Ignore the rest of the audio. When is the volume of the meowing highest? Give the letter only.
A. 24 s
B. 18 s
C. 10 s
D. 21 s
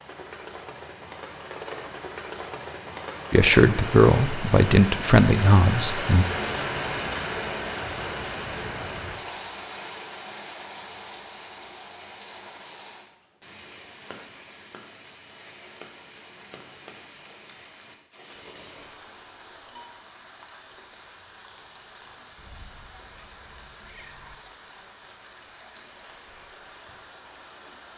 A.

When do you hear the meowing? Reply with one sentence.
The meowing can be heard from 22.4 to 24.4 s.